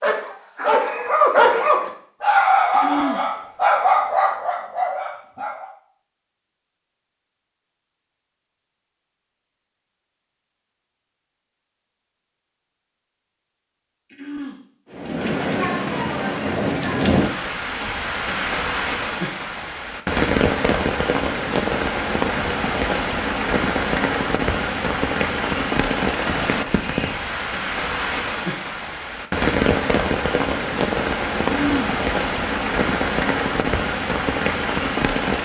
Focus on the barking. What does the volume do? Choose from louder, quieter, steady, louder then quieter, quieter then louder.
quieter.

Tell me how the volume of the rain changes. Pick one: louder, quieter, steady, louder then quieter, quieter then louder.
steady.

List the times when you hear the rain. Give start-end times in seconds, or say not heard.
14.9-35.3.